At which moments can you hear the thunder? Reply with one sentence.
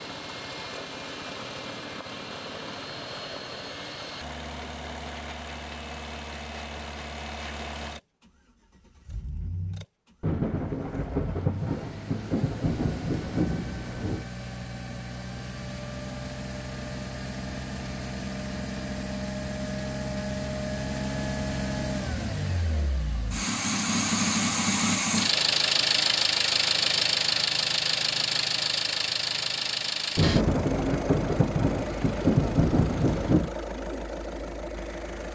You can hear the thunder from 10.2 to 14.2 s and from 30.1 to 33.5 s.